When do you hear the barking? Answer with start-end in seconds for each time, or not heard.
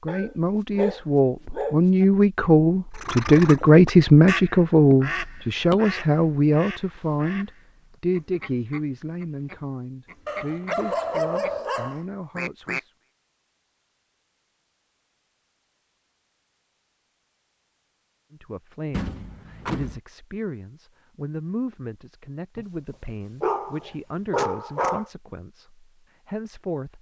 0.1-2.0, 10.2-12.0, 23.4-25.1.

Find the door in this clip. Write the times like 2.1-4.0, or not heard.
18.9-20.0.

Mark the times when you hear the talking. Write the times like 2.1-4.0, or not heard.
0.0-12.9, 18.3-26.9.